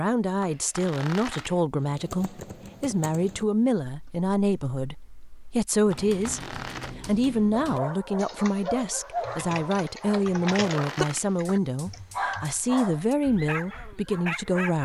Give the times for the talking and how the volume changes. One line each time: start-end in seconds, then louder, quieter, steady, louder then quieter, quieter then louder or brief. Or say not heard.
0.0-14.8 steady.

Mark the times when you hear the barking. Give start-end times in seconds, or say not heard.
7.6-14.8.